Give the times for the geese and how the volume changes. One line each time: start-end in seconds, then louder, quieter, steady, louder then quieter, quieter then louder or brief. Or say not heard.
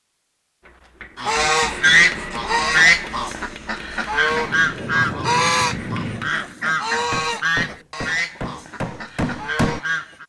1.1-10.2 quieter.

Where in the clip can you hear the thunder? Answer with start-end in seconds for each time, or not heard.
4.3-6.3.